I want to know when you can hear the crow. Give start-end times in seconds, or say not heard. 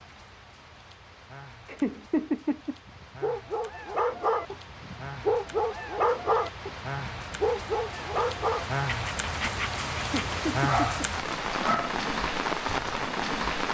not heard.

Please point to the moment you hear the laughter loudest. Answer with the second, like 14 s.
2 s.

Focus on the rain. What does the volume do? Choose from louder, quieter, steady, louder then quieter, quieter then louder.
louder.